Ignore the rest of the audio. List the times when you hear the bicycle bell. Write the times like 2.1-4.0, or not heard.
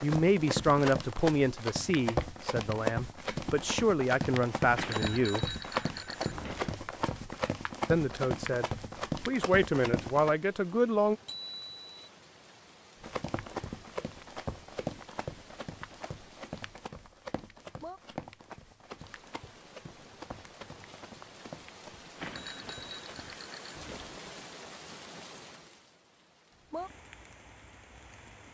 4.8-6.8, 11.2-11.8, 22.2-24.2.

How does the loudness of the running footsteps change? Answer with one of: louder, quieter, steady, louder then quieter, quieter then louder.
quieter.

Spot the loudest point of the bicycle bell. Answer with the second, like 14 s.
5 s.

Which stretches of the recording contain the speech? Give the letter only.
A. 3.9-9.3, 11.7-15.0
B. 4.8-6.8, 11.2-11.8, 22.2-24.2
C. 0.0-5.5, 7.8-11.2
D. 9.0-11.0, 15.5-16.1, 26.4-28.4
C.